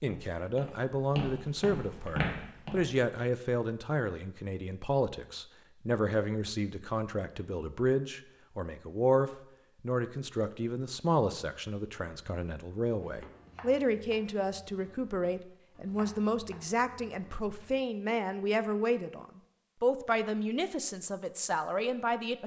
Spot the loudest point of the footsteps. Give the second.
2 s.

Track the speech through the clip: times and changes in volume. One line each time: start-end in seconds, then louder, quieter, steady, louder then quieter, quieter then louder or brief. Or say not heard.
0.0-22.4 steady.